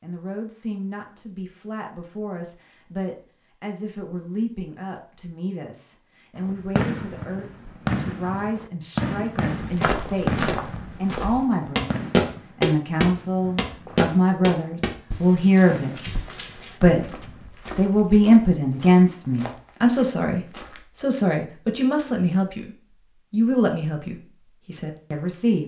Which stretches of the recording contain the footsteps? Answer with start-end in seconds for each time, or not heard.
9.6-20.9.